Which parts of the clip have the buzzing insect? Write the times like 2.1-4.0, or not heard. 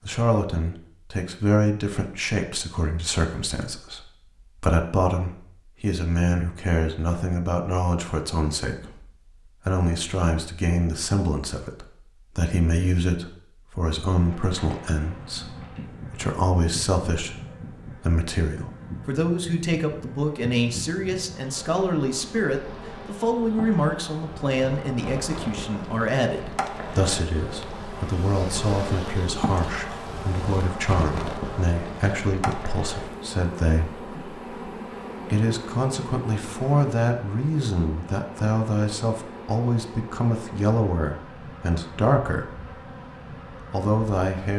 14.2-44.5.